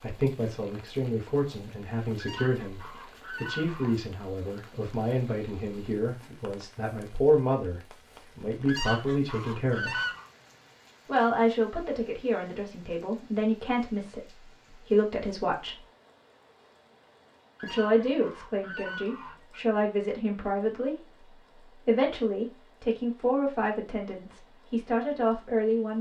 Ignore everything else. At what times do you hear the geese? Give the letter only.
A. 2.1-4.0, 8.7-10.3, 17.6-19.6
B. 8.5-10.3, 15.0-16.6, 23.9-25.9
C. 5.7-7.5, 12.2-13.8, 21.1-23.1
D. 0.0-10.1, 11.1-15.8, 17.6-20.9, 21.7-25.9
A.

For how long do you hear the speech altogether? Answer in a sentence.
The speech can be heard for 22 seconds in total.